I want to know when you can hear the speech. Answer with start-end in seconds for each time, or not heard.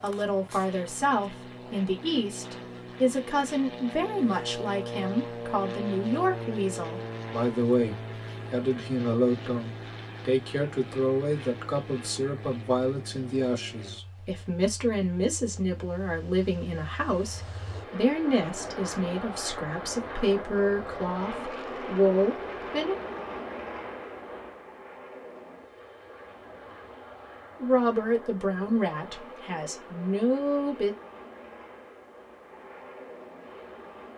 0.0-22.9, 27.6-30.9.